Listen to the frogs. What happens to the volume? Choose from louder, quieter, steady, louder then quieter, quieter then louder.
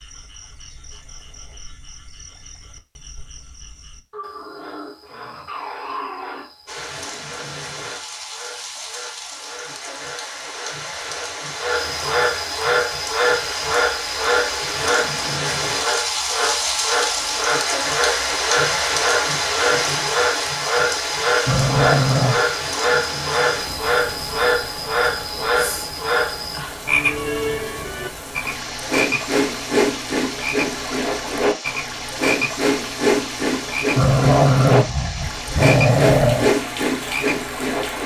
louder.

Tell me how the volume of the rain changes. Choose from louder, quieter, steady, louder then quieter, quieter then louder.
louder then quieter.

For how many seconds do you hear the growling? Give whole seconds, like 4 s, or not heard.
6 s.